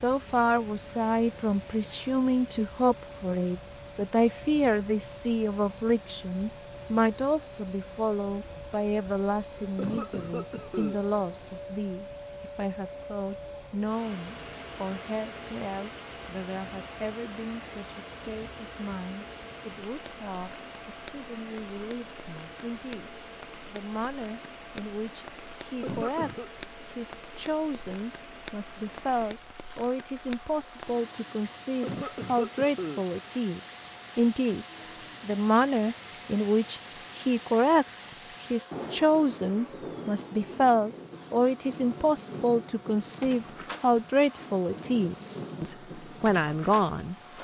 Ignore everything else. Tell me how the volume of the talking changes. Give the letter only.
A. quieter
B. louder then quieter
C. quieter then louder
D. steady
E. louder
C.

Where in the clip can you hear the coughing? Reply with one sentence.
The coughing can be heard from 9.8 to 11.0 s, from 25.8 to 26.5 s and from 31.8 to 33.0 s.